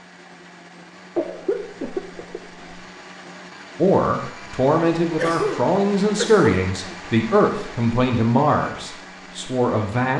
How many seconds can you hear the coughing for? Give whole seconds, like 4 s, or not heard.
3 s.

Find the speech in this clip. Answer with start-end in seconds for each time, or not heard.
3.8-10.1.